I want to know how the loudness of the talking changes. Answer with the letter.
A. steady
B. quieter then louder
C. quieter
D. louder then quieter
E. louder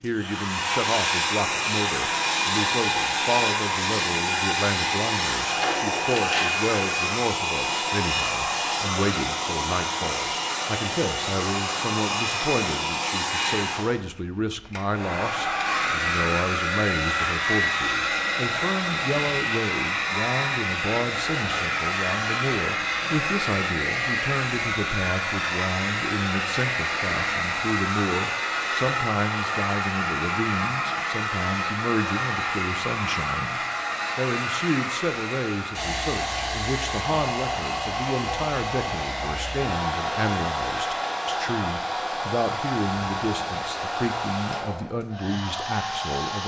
A.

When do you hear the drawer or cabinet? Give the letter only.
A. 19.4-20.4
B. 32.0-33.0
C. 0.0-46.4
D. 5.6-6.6
D.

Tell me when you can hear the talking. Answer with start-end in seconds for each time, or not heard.
0.0-46.4.